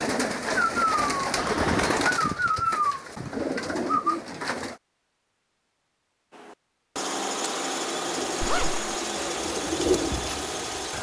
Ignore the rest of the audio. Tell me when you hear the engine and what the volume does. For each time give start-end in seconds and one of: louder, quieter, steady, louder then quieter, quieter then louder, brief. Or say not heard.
6.3-10.9 steady.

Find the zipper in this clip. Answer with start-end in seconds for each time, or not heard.
1.4-2.0, 8.4-8.9.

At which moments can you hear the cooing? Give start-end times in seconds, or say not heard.
0.0-4.8, 8.2-10.9.